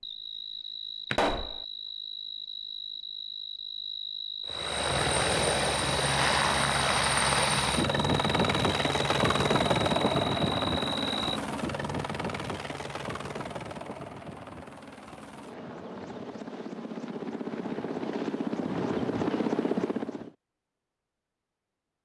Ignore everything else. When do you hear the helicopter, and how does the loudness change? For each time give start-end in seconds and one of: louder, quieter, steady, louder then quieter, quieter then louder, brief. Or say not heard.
4.5-20.3 quieter then louder.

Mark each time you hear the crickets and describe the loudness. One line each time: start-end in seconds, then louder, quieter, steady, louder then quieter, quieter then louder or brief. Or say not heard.
0.0-11.4 steady.